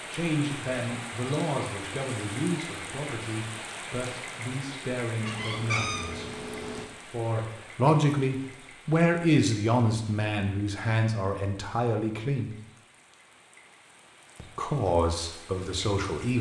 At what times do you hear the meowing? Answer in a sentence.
The meowing can be heard from 5.2 to 6.8 s.